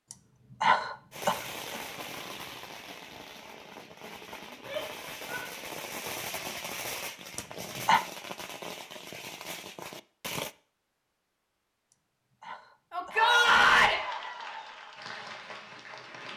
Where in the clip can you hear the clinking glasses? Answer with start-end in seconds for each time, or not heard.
not heard.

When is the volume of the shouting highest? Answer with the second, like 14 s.
14 s.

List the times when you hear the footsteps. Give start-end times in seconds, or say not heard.
not heard.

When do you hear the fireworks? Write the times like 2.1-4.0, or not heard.
1.1-10.6.